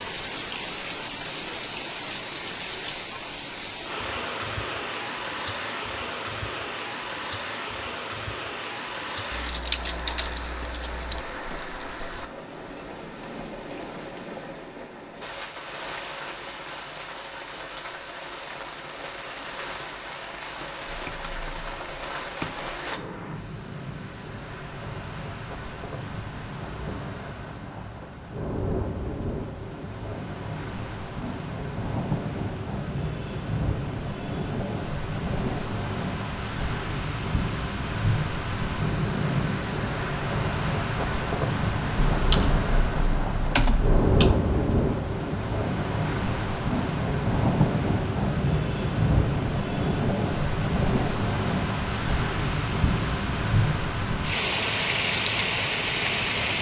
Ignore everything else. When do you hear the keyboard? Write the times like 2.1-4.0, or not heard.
9.3-11.2, 20.9-22.8, 42.1-44.4.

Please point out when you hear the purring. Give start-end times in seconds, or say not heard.
not heard.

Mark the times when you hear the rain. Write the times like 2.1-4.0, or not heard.
0.0-56.5.